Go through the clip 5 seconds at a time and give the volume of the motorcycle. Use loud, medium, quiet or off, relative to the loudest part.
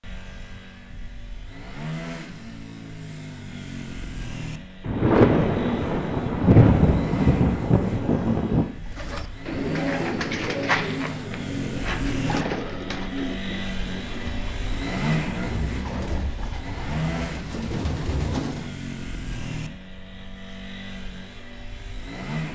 medium, medium, loud, loud, medium.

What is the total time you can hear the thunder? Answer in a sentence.
The thunder can be heard for 4 seconds in total.